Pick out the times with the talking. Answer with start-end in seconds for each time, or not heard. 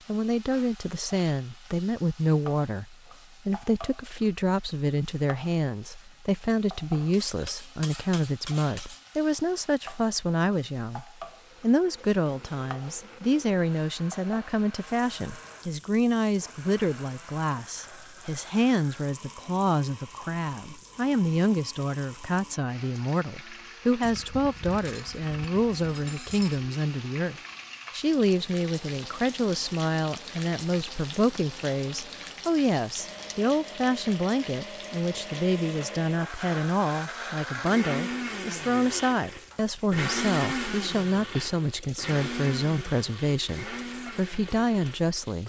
0.1-45.4.